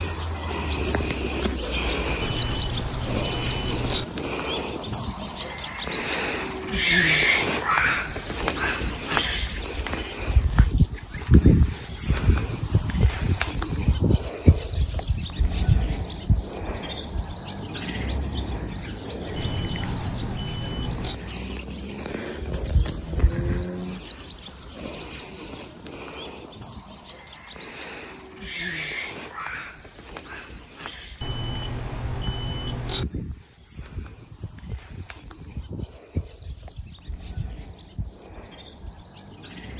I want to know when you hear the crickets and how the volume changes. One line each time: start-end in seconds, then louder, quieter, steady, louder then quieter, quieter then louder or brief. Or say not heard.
0.0-39.7 quieter.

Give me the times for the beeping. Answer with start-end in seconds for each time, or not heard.
2.2-4.0, 19.4-21.2, 31.2-33.0.